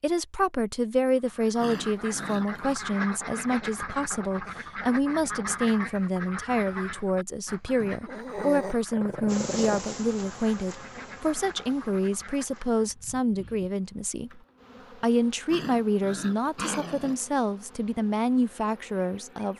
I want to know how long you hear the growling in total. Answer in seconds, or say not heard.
5 s.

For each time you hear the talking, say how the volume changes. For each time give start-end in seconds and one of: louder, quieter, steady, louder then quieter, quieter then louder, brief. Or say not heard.
0.0-19.5 steady.